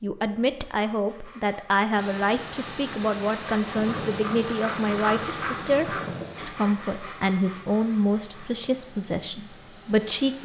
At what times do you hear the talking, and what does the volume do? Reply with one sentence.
The talking can be heard from 0.0 to 10.4 s, at a steady volume.